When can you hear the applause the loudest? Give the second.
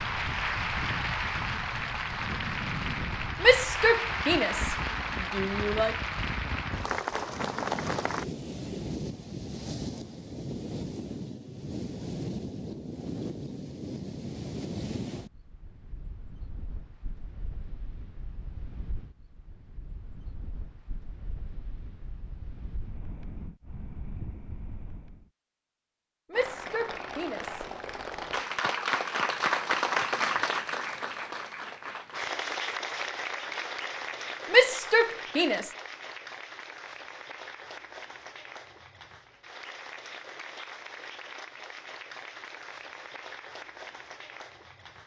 30 s.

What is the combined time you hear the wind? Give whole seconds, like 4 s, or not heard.
25 s.